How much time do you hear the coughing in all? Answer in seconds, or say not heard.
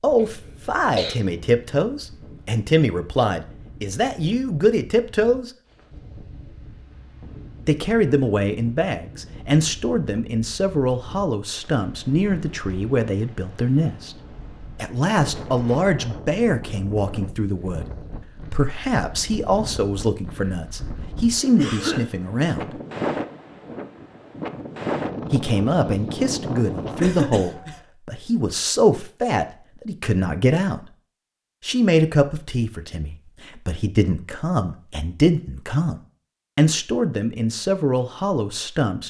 3 s.